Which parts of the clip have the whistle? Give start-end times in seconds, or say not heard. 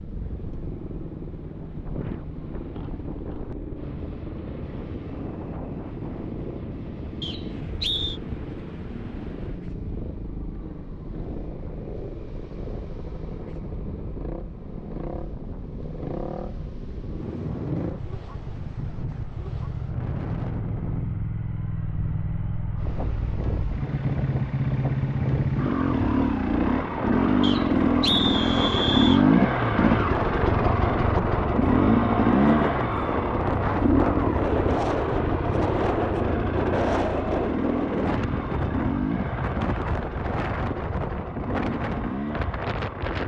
7.2-8.2, 27.4-29.2.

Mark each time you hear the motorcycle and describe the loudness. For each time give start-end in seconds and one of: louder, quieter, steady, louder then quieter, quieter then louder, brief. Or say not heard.
0.0-43.2 louder then quieter.